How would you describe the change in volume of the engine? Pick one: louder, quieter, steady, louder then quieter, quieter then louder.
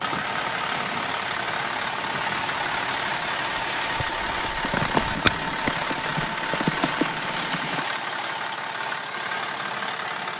steady.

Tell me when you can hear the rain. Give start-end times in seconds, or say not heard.
0.0-7.8.